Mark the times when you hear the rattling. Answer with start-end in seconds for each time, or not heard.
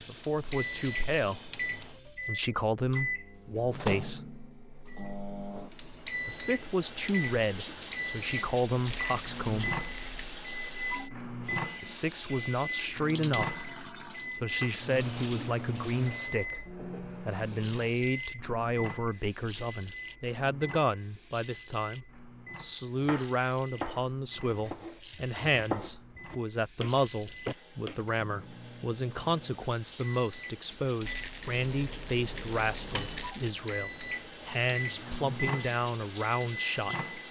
8.8-10.4, 31.1-33.5.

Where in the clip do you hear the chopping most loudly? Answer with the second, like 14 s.
26 s.